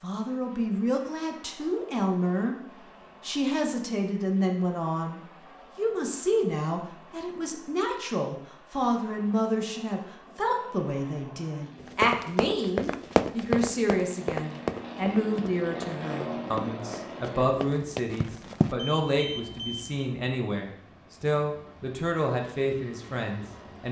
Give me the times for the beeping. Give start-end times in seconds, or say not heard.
18.8-20.1.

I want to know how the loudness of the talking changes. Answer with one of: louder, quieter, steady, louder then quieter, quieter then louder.
steady.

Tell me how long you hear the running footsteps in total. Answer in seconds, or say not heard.
7 s.